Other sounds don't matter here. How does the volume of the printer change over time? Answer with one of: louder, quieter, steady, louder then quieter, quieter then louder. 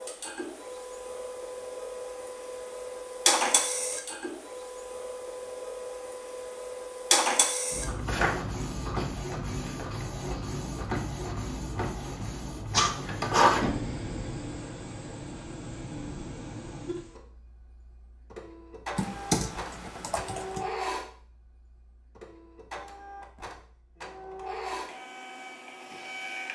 quieter.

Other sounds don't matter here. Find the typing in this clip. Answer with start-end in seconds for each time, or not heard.
18.9-20.6.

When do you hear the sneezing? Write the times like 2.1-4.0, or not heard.
12.7-13.4.